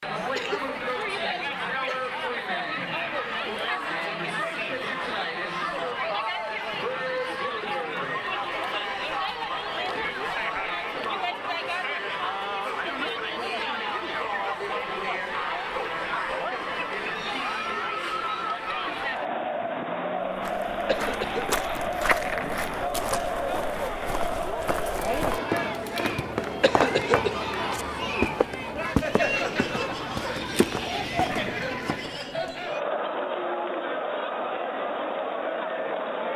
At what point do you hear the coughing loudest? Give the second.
27 s.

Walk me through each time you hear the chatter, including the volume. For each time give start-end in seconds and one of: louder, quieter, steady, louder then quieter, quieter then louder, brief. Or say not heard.
0.0-36.3 steady.